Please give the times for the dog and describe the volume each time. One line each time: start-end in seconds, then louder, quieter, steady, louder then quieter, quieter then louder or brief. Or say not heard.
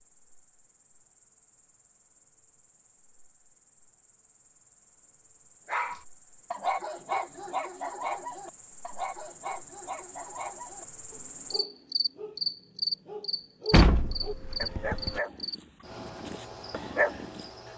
5.7-17.4 quieter then louder.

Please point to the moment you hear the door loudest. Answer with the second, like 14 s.
14 s.